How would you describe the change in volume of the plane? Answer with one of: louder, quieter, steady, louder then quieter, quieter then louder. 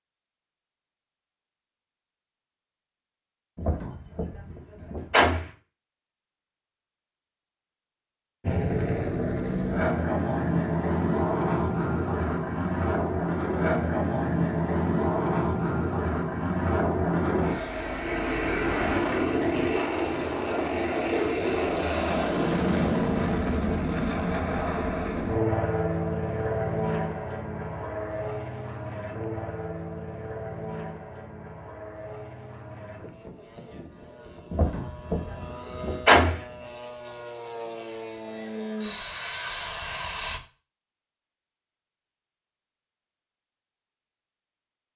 quieter.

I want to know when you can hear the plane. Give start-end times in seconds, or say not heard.
8.4-40.4.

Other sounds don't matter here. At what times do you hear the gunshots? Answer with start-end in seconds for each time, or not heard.
3.5-5.5, 34.5-36.4.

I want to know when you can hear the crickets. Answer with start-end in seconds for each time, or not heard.
not heard.